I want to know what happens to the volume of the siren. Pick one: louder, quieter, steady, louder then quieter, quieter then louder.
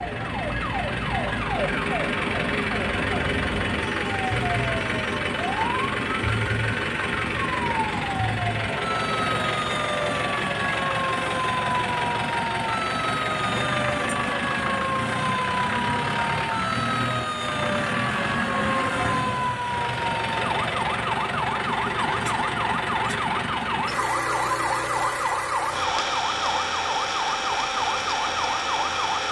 steady.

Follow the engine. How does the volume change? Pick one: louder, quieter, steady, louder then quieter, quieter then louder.
steady.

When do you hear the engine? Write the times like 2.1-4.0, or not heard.
0.0-29.2.